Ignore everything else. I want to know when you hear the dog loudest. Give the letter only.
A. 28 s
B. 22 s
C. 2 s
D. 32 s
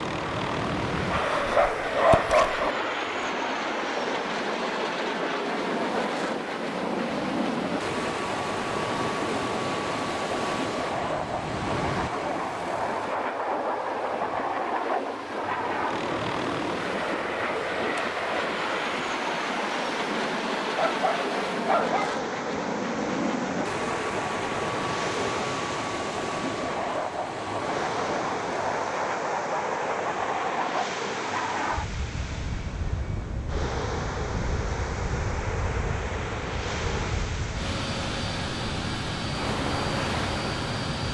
C.